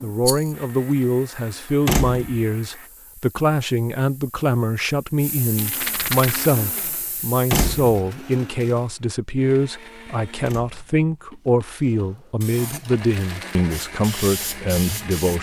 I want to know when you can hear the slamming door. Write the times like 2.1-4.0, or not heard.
1.9-2.4, 7.5-8.0, 10.4-10.9.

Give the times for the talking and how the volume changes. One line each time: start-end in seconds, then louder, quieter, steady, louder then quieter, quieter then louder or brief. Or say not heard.
0.0-15.3 steady.